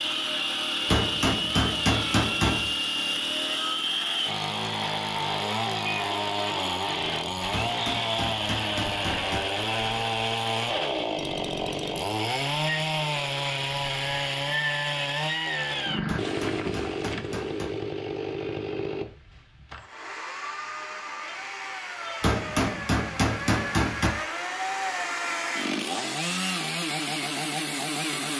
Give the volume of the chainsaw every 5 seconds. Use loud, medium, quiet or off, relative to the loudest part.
loud, loud, loud, loud, medium, loud.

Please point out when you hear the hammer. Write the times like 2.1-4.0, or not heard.
0.8-2.7, 7.5-9.4, 16.1-17.7, 22.2-24.1.